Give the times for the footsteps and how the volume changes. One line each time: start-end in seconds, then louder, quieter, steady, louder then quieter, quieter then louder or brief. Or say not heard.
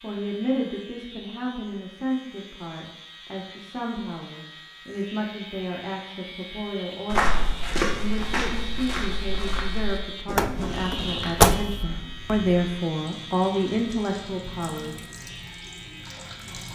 7.1-12.8 quieter.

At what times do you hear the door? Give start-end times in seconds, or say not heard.
10.3-11.8.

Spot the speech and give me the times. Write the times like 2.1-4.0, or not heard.
0.0-14.9.